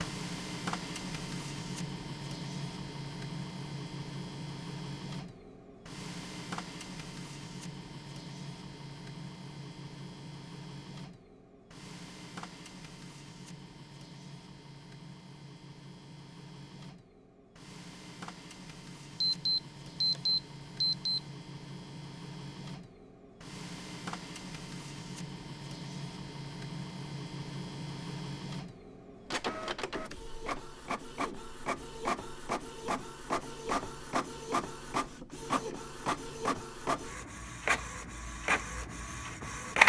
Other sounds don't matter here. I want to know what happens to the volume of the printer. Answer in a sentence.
The loudness of the printer goes down, then up.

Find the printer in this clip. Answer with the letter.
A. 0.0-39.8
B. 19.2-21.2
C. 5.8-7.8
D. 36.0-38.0
A.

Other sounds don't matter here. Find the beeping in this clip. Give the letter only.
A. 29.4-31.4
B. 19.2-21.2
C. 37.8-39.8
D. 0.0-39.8
B.